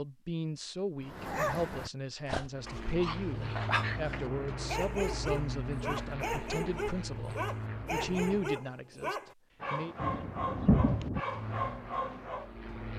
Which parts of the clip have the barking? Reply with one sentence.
You can hear the barking from 1.0 to 12.5 s.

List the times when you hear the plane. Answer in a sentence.
The plane can be heard from 2.5 to 8.6 s and from 11.2 to 12.9 s.